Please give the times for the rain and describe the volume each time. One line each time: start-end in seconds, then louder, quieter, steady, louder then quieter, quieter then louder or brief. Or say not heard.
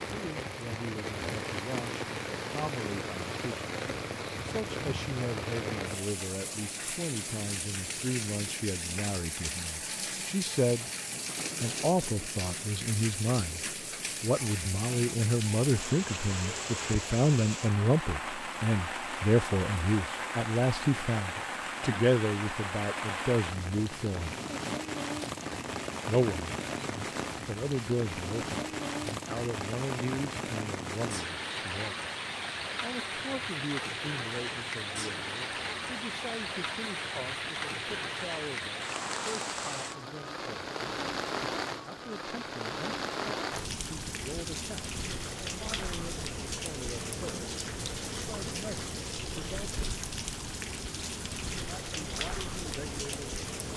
0.0-53.7 steady.